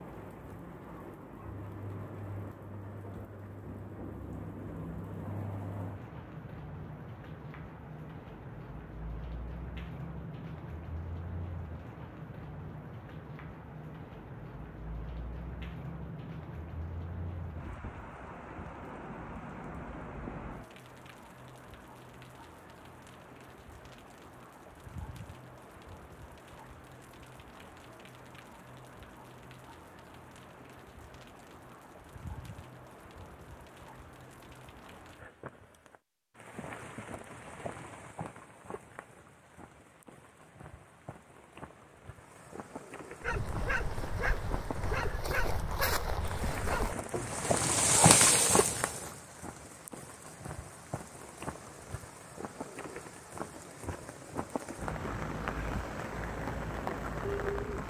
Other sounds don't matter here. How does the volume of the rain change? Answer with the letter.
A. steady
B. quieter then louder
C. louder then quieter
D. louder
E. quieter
B.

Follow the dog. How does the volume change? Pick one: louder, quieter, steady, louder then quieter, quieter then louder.
steady.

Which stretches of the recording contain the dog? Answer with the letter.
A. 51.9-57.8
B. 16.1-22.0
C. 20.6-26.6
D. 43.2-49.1
D.